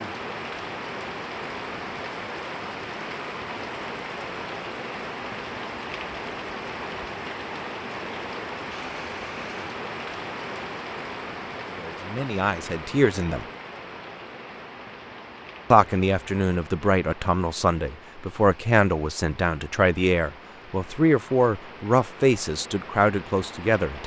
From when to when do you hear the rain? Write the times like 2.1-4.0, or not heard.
0.0-24.0.